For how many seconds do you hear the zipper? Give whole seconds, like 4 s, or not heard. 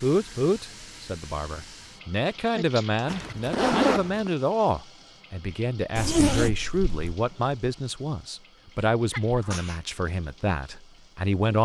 2 s.